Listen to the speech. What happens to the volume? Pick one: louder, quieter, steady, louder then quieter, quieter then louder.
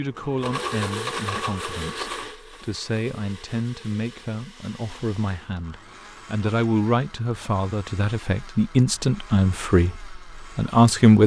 louder.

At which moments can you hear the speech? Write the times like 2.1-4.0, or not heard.
0.0-11.2.